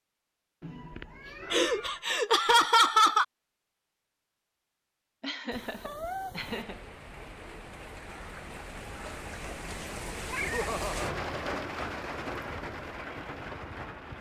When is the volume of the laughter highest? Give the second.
3 s.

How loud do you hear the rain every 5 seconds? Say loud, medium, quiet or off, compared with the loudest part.
off, medium, loud.